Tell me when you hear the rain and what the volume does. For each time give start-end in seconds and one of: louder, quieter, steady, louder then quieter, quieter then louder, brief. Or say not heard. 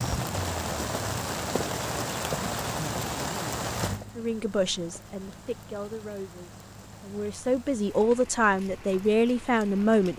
0.0-10.1 quieter.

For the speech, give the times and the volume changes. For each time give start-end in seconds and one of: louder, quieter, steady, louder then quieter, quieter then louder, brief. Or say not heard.
4.2-10.1 quieter then louder.